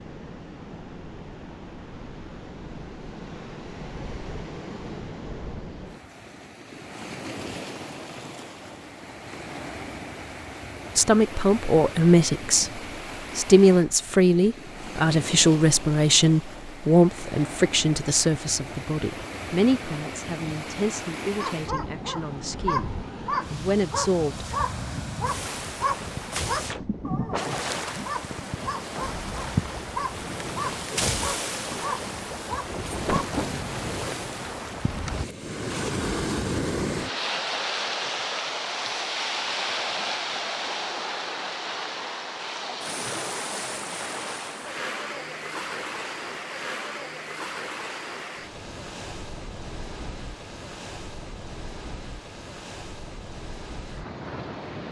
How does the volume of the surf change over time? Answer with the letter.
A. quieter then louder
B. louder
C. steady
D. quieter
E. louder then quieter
E.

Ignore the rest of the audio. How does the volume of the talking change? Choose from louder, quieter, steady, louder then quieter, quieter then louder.
quieter.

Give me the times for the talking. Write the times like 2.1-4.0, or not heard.
10.9-24.6.